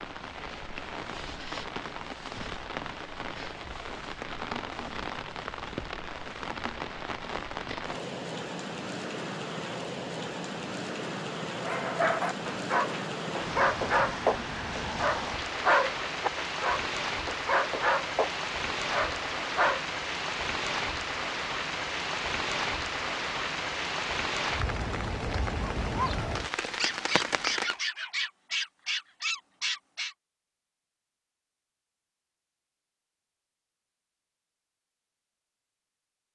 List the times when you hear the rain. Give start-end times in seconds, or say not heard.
0.0-27.8.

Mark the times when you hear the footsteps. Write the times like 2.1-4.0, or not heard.
not heard.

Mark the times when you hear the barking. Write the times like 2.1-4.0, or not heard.
11.6-19.9, 25.9-30.1.